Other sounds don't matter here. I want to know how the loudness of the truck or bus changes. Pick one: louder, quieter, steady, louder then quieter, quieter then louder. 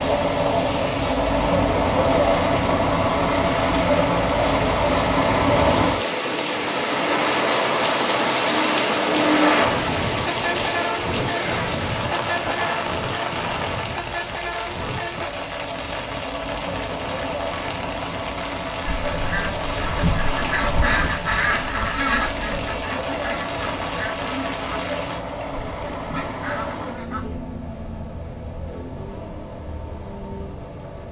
quieter.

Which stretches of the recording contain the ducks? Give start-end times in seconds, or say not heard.
18.8-27.4.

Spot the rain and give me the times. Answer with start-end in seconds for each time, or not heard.
0.0-25.2.